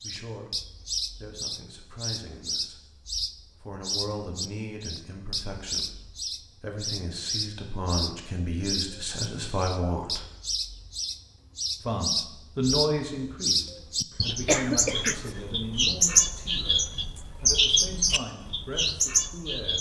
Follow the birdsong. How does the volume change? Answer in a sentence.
The loudness of the birdsong goes up.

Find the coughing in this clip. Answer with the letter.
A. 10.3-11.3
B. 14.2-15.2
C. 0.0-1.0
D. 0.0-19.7
B.